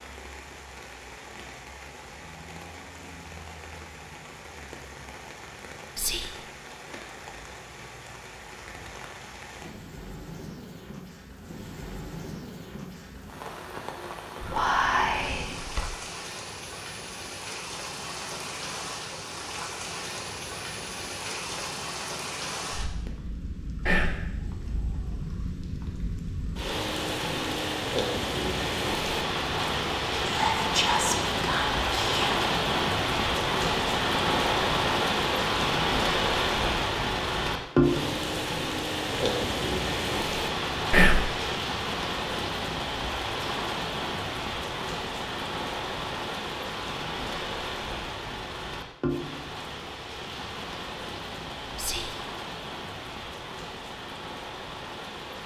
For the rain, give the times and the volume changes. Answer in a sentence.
The rain can be heard from 0.0 to 55.4 s, getting louder then quieter.